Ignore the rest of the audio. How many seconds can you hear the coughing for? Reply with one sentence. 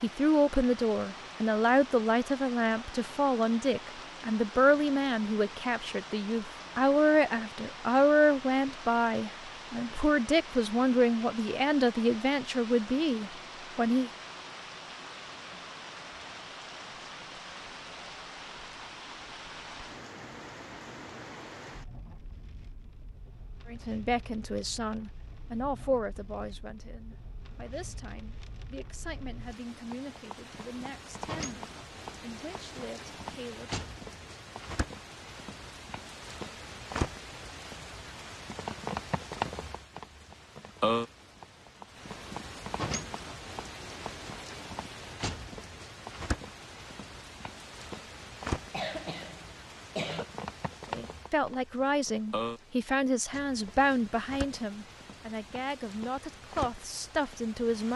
You can hear the coughing for 2 seconds altogether.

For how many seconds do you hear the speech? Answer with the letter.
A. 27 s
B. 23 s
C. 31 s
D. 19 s
C.